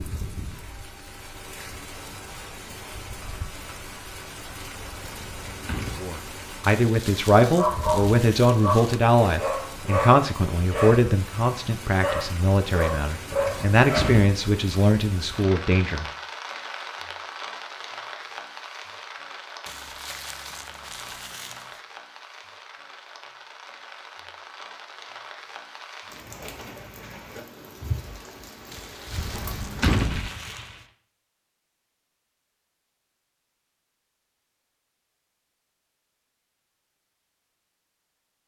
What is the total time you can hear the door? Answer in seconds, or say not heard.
3 s.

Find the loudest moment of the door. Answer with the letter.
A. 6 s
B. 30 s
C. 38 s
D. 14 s
B.